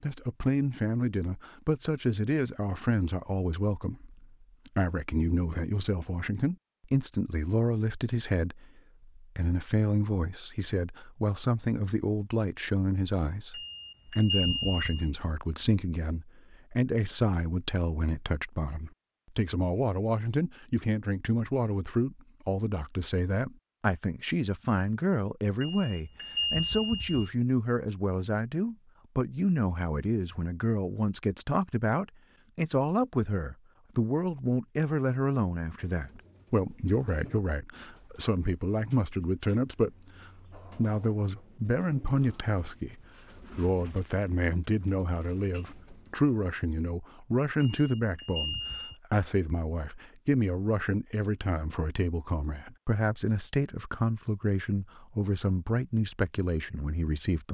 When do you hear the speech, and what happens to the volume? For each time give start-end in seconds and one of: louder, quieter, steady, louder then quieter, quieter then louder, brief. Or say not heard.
0.0-57.4 steady.